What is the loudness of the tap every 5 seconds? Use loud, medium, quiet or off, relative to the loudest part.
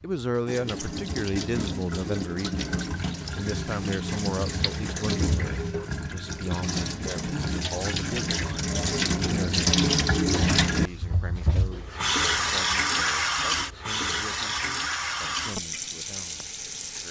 medium, loud, loud, medium.